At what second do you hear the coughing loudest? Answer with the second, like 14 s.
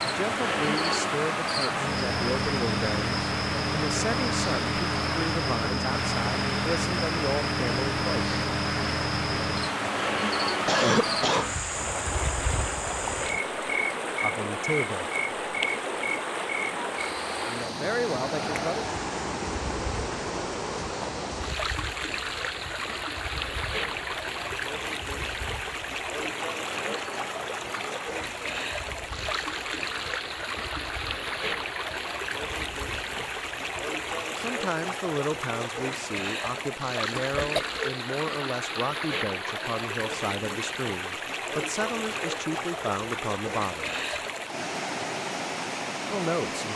11 s.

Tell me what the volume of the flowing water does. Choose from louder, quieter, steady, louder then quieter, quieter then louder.
steady.